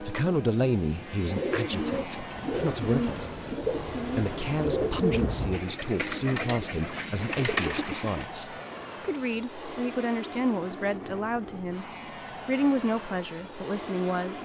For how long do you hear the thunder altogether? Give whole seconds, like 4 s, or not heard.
3 s.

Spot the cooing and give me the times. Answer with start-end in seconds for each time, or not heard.
1.2-8.3.